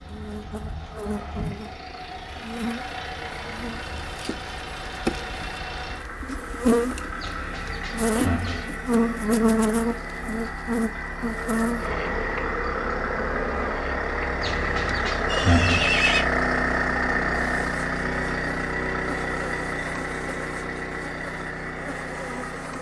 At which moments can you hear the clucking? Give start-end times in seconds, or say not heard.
7.2-8.7, 14.4-15.9.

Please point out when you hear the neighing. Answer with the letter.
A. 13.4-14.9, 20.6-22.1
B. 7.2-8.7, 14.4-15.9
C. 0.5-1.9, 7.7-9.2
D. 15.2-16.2
D.